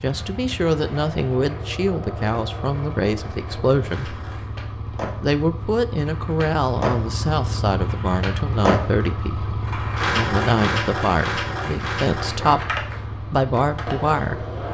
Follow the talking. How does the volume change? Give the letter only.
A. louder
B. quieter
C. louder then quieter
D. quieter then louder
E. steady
E.